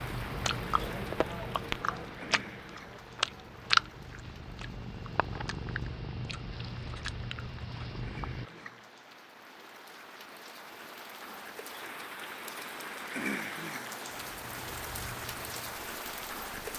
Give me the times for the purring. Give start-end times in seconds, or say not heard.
0.0-8.5, 14.1-16.7.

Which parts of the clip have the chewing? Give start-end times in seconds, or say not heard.
0.2-8.9.